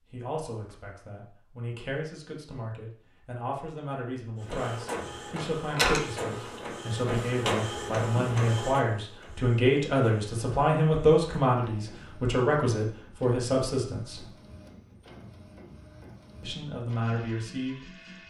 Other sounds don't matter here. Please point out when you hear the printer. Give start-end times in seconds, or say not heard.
4.4-18.2.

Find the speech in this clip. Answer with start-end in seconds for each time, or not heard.
0.1-14.2, 16.4-18.2.